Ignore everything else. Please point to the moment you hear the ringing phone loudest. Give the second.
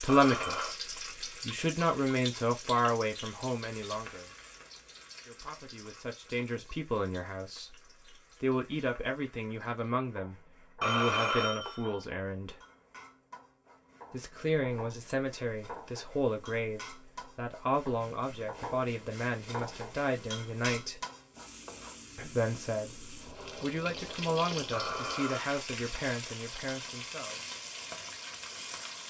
11 s.